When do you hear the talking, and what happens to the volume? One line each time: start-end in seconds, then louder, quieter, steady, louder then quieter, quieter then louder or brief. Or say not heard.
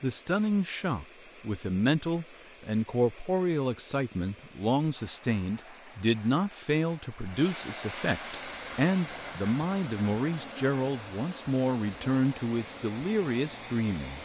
0.0-14.2 steady.